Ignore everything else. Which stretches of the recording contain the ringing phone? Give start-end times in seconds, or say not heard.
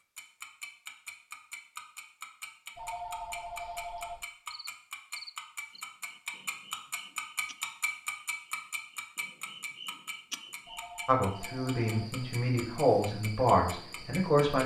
2.8-4.2, 10.7-12.2.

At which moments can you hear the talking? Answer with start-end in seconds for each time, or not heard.
11.1-14.6.